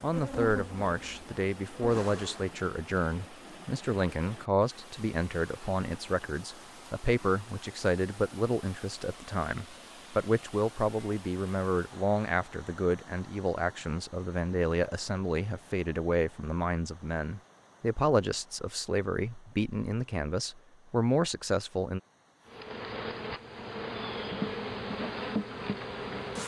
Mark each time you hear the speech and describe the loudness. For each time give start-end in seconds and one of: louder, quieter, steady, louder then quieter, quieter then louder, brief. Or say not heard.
0.0-22.0 steady.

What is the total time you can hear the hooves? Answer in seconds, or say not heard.
not heard.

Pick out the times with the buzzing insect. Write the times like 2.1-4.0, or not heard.
0.0-2.5, 22.4-26.4.